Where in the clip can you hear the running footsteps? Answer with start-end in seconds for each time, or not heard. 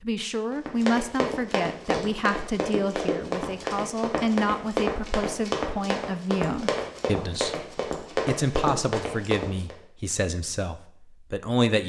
0.5-9.8.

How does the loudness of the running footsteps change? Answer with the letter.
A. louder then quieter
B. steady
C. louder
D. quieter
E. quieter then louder
B.